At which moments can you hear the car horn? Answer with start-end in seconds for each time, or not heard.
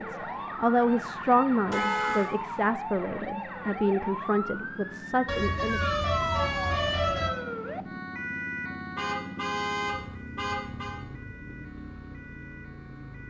1.7-2.3, 5.2-7.3, 8.9-10.9.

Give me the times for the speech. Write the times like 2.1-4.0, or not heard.
0.0-5.8.